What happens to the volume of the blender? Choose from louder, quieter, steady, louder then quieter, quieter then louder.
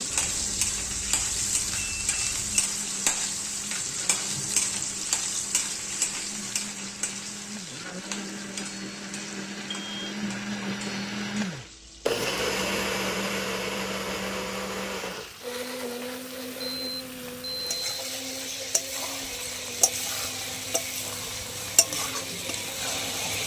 louder then quieter.